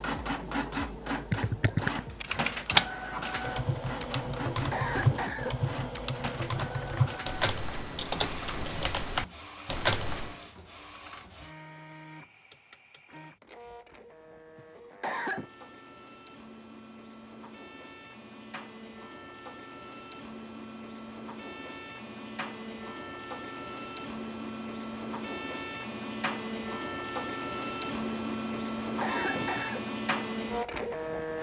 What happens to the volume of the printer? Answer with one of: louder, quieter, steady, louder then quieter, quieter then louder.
quieter then louder.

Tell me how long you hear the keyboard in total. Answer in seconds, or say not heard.
9 s.